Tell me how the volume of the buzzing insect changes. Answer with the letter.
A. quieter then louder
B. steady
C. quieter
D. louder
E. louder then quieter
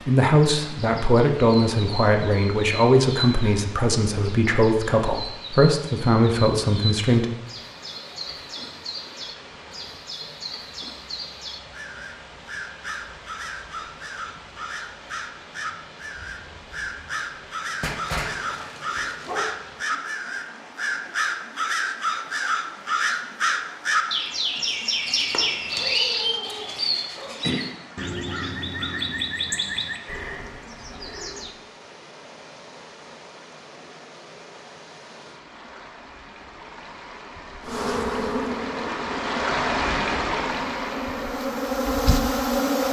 A.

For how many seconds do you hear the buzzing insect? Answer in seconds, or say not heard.
5 s.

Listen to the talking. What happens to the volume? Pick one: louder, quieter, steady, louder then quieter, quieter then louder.
steady.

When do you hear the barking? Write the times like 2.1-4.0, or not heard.
17.8-19.5, 25.7-27.6.